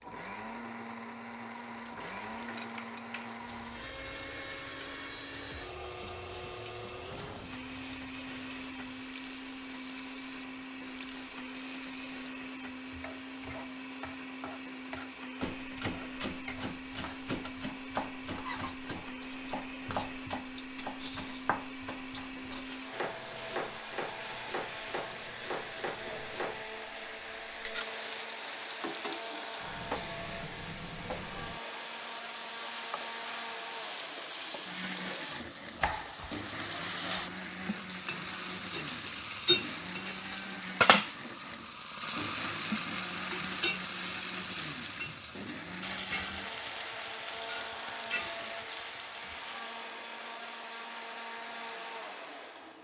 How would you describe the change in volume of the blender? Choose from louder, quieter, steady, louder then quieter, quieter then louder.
steady.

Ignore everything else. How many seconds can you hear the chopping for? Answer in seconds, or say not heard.
11 s.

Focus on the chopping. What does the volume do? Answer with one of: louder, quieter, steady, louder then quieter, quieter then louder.
steady.